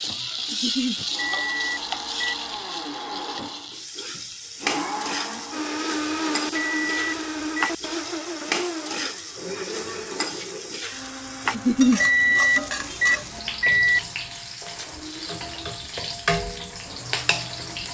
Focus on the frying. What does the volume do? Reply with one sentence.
The volume of the frying stays about the same.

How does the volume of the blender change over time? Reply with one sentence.
The volume of the blender goes up, then down.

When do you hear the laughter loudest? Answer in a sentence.
The volume of the laughter peaks at 12 seconds.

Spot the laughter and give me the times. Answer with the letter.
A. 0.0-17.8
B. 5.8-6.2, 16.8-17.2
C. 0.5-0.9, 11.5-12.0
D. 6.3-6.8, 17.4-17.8
C.